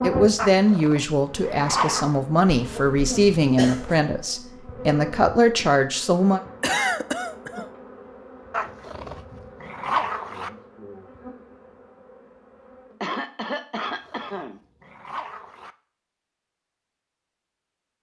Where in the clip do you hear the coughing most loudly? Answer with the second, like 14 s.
7 s.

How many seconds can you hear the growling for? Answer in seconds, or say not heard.
6 s.